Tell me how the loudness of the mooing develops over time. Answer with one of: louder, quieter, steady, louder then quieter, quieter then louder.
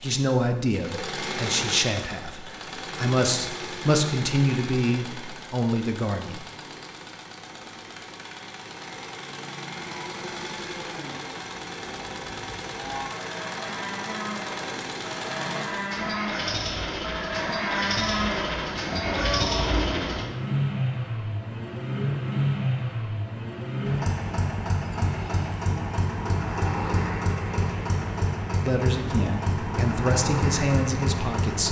louder.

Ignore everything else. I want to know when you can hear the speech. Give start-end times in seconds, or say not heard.
0.0-6.5, 28.6-31.6.